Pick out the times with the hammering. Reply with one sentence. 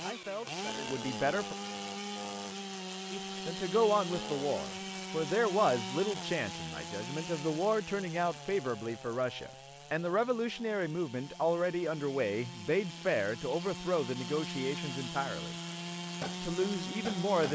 The hammering can be heard from 16.2 to 17.5 s.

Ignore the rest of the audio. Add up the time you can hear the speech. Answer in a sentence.
You can hear the speech for 15 seconds altogether.